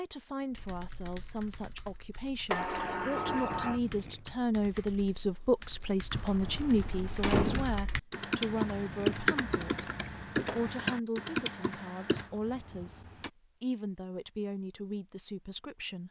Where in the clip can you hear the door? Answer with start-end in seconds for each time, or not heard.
2.5-3.8, 6.1-7.8, 12.1-13.3.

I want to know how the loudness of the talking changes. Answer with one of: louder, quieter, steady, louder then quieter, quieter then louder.
louder then quieter.